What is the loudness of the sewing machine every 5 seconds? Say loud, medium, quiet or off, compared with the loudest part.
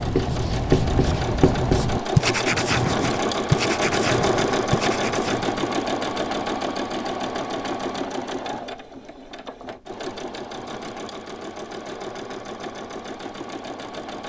loud, loud, medium.